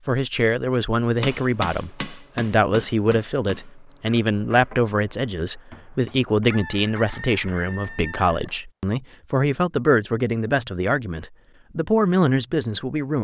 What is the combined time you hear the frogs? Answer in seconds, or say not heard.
not heard.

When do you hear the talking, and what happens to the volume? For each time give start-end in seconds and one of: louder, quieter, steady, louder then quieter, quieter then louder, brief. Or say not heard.
0.1-13.1 steady.